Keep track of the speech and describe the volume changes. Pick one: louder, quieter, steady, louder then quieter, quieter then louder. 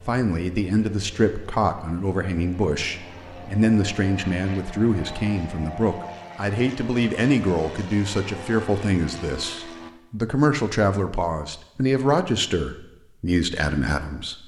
steady.